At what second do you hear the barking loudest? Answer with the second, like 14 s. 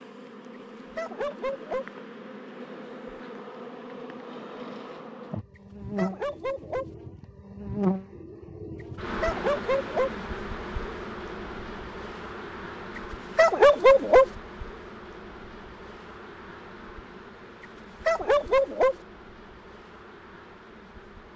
14 s.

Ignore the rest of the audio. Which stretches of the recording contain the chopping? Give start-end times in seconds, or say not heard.
not heard.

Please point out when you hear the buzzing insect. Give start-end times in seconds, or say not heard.
0.0-21.3.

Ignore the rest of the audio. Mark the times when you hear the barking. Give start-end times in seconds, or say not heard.
0.9-1.9, 6.0-6.8, 9.2-10.1, 13.3-14.2, 18.1-18.9.